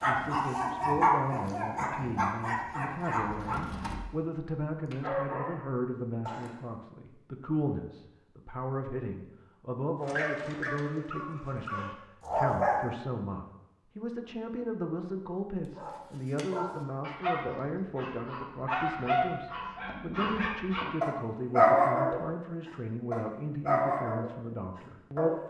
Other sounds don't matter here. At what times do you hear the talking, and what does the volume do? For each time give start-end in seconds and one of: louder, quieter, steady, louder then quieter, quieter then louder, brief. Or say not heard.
0.0-25.4 steady.